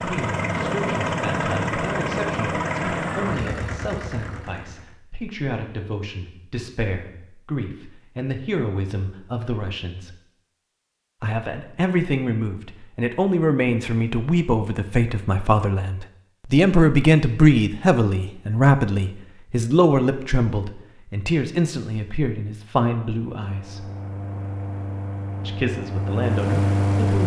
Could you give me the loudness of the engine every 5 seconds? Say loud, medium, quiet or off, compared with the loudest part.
loud, off, off, off, medium, loud.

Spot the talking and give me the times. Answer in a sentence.
The talking can be heard from 0.0 to 10.2 s, from 11.2 to 23.9 s and from 25.4 to 27.2 s.